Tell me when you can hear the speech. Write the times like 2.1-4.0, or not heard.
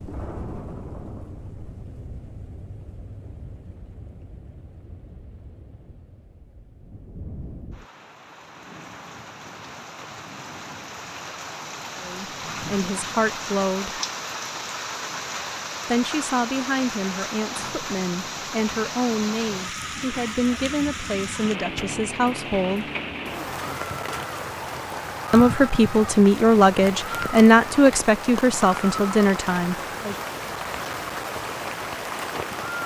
11.9-14.0, 15.8-22.9, 25.3-30.1.